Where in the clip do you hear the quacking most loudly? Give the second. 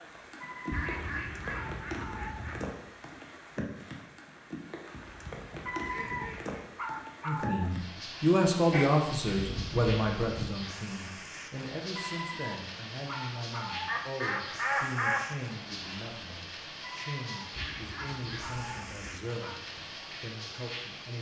15 s.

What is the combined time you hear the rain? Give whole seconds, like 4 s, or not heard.
21 s.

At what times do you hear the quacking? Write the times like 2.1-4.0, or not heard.
0.7-2.8, 5.0-6.7, 8.7-10.6, 13.8-15.3, 17.6-19.0.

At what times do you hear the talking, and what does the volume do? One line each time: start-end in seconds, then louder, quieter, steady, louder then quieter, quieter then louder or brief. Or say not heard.
7.2-21.1 quieter.